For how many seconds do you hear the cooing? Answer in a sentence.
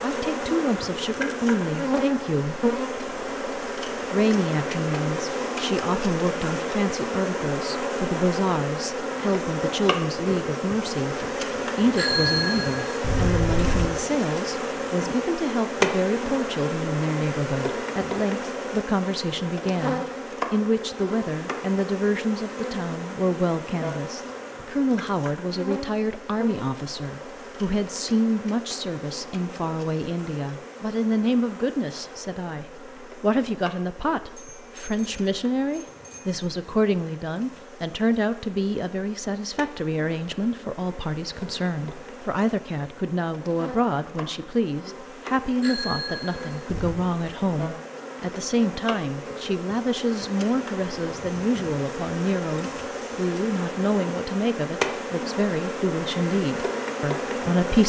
You can't hear the cooing here.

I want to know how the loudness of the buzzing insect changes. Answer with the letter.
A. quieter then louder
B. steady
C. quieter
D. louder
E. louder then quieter
A.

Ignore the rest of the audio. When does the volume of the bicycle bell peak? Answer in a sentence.
The loudest moment of the bicycle bell is at 12 seconds.